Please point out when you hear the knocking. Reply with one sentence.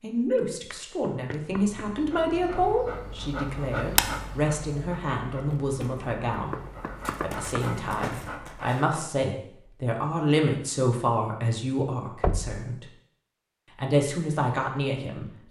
The knocking can be heard from 0.5 to 1.9 s, from 6.5 to 8.2 s and from 12.2 to 12.7 s.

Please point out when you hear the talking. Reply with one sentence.
You can hear the talking from 0.0 to 6.6 s, from 7.2 to 12.8 s and from 13.8 to 15.4 s.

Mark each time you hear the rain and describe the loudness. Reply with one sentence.
The rain can't be heard in this clip.